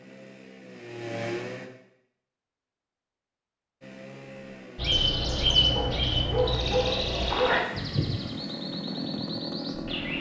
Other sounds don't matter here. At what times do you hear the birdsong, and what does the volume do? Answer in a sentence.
The birdsong can be heard from 4.8 to 10.1 s, getting quieter.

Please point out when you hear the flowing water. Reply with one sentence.
The flowing water can't be heard in this clip.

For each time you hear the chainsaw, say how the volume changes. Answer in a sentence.
You can hear the chainsaw briefly from 0.0 to 1.7 s; and from 3.8 to 10.1 s, getting louder.